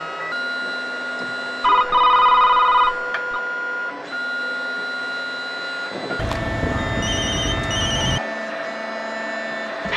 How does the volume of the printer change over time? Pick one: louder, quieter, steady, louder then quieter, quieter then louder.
steady.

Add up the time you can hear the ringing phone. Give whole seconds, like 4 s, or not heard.
4 s.